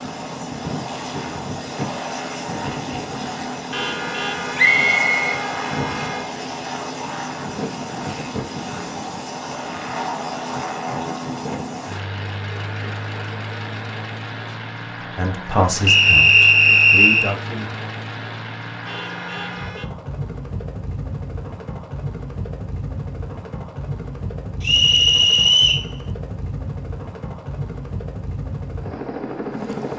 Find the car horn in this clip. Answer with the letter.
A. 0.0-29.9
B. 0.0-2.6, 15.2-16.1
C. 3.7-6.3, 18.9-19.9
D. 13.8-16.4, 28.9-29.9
C.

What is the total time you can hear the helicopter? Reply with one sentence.
You can hear the helicopter for 30 seconds altogether.